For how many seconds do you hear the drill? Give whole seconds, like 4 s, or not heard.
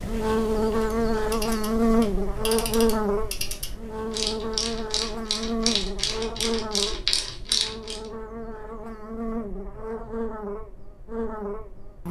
not heard.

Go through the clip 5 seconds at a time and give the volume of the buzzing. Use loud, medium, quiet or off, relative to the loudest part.
loud, medium, medium.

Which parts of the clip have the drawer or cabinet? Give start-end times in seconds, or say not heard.
not heard.